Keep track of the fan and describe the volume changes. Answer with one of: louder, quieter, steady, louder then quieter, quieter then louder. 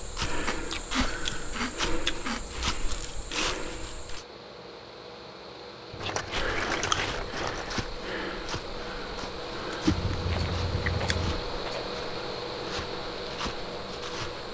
louder.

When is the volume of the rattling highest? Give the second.
7 s.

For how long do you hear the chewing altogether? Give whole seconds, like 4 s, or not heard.
6 s.